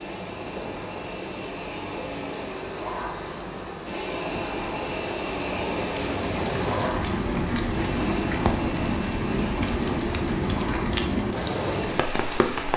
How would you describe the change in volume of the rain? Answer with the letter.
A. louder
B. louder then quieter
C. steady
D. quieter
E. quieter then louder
A.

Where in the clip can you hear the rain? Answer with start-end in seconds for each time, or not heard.
0.0-12.7.